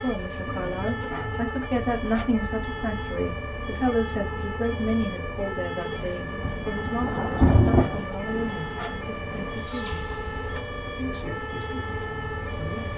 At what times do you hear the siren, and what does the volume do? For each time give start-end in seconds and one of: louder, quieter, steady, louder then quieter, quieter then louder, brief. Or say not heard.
0.0-12.9 steady.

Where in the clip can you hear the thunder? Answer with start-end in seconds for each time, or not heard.
6.5-8.1.